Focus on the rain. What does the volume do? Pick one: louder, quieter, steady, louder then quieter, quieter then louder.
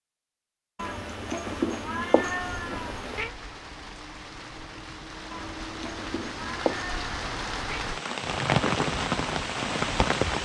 louder.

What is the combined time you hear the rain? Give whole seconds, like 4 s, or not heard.
8 s.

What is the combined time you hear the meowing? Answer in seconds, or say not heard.
5 s.